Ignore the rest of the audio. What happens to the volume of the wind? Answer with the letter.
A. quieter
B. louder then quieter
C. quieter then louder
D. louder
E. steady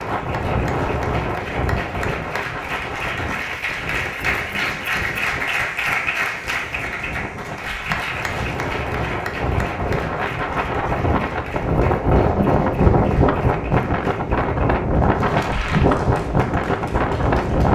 C.